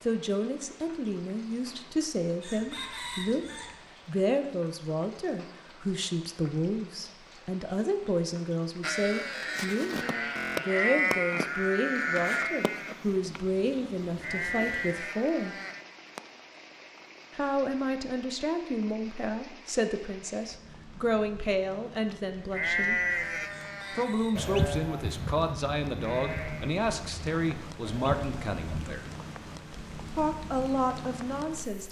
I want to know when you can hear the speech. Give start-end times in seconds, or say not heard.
0.0-15.6, 17.3-23.0, 23.9-29.1, 30.1-31.8.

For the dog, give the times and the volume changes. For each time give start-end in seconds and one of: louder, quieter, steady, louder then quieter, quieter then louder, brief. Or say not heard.
not heard.